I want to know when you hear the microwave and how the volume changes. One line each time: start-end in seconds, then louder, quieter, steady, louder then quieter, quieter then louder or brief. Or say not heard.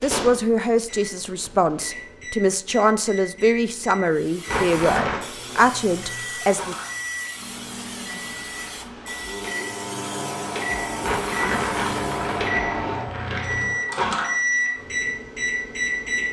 0.0-16.2 louder.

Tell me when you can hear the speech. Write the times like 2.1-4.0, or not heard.
0.0-6.8.